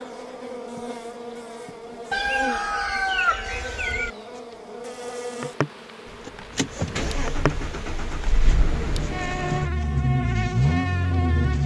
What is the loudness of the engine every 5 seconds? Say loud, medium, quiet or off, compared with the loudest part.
off, medium, loud.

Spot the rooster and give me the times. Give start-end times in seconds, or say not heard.
2.1-4.1.